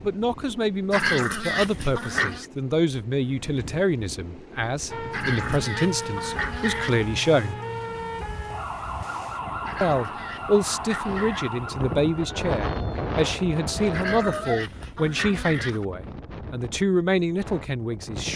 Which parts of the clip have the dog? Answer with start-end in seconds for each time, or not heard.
0.9-2.5, 5.1-7.0, 9.7-11.6, 13.9-15.8.